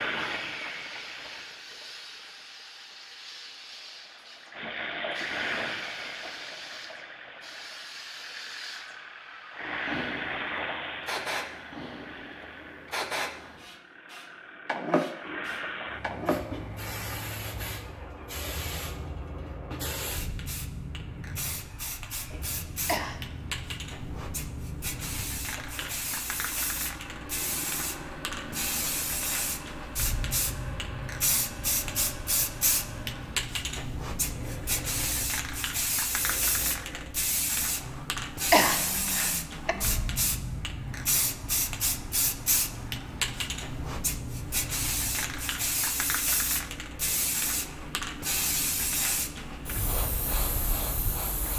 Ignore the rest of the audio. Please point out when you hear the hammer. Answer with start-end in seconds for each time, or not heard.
not heard.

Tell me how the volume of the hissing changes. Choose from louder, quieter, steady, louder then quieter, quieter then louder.
louder.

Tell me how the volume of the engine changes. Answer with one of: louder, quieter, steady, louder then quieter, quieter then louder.
quieter.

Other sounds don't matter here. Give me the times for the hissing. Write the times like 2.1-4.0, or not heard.
0.0-51.5.